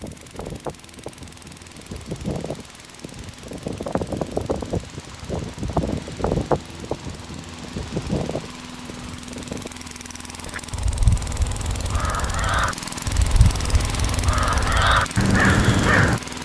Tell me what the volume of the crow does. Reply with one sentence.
The volume of the crow goes up.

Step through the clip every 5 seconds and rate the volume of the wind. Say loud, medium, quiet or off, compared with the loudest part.
loud, loud, off, off.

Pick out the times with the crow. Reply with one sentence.
The crow can be heard from 10.4 to 16.2 s.